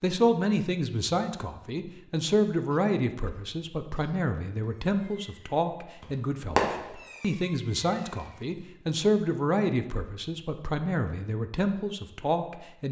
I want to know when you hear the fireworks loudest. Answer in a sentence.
The volume of the fireworks peaks at 7 seconds.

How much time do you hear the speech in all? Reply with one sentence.
You can hear the speech for 13 seconds altogether.